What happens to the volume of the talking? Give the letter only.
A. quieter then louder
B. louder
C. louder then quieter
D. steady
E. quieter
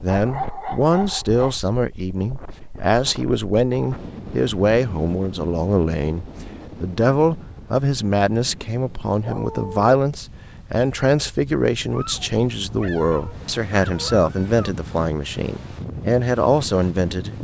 D.